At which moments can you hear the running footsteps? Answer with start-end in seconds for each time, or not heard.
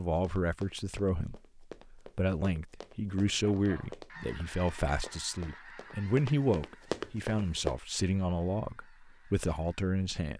0.0-7.8.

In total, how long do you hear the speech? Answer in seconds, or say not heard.
10 s.